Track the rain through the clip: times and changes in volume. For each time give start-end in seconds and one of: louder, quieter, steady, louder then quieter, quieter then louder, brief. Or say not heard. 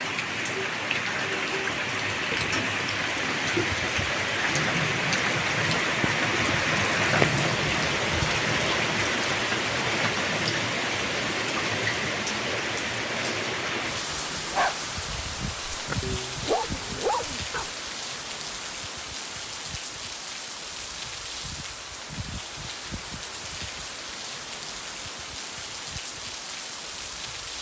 0.0-27.5 quieter.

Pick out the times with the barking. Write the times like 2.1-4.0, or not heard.
14.2-17.7.